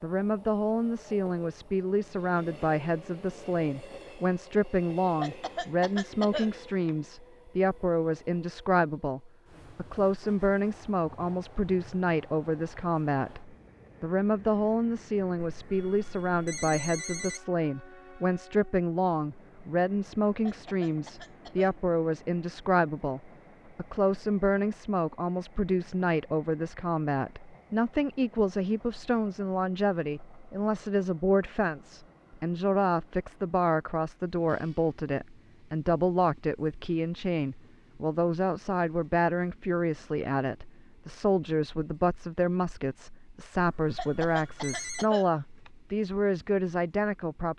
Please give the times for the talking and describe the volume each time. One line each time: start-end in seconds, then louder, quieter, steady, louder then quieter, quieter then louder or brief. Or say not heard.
0.0-47.5 steady.